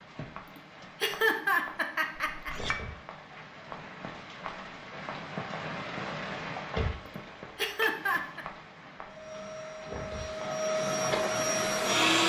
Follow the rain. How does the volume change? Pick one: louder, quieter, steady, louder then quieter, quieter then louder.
louder then quieter.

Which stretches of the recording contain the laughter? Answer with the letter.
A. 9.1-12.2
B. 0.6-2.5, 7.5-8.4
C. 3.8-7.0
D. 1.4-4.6
B.